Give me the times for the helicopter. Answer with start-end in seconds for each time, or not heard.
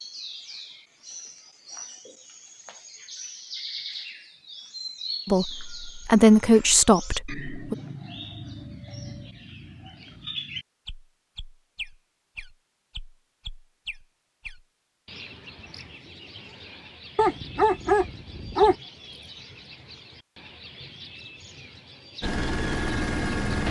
22.2-23.6.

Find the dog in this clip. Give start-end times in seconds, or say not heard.
17.1-18.8.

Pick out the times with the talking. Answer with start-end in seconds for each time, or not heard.
5.2-7.8.